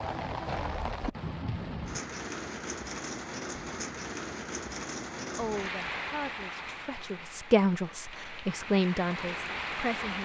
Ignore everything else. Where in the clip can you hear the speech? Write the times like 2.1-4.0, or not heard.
5.3-10.2.